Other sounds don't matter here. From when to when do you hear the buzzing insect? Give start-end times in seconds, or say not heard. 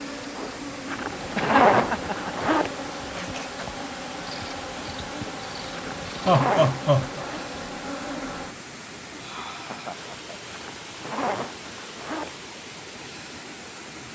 0.0-8.7.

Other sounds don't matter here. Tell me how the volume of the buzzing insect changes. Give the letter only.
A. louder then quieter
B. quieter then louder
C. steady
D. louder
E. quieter
C.